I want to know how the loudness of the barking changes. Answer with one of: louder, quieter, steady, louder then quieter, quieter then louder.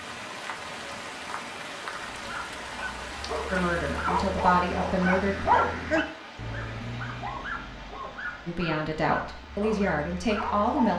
louder then quieter.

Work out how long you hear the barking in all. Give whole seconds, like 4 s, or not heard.
9 s.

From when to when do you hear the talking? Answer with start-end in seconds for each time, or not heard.
3.5-5.5, 8.4-10.9.